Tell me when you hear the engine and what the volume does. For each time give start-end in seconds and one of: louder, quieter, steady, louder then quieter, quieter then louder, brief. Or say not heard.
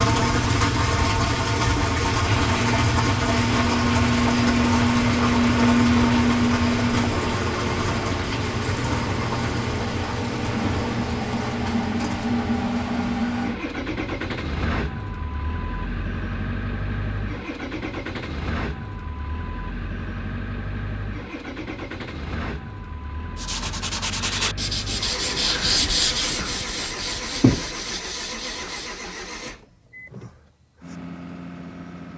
0.0-32.1 quieter.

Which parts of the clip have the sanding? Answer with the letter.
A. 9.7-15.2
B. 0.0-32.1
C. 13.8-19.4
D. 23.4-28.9
D.